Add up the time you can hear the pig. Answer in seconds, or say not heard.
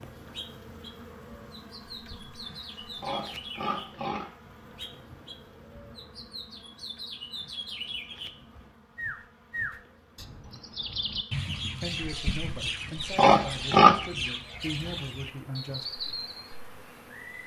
4 s.